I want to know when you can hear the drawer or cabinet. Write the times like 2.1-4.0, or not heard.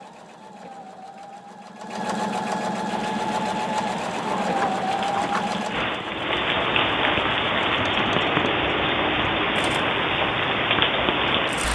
4.0-5.5.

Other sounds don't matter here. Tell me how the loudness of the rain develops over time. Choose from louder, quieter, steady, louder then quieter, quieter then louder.
louder.